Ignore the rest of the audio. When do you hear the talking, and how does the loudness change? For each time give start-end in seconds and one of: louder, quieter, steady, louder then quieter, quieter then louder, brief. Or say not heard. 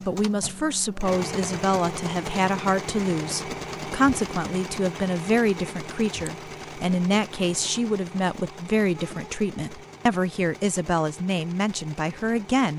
0.1-12.7 steady.